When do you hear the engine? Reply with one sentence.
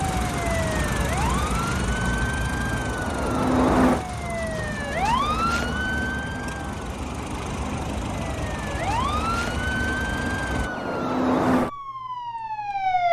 The engine can be heard from 0.0 to 10.7 s.